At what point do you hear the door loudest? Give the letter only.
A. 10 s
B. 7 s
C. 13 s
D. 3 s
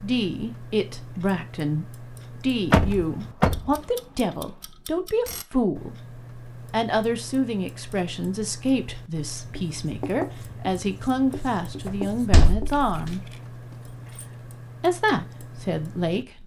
D.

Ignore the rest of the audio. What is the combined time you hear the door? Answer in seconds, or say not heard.
2 s.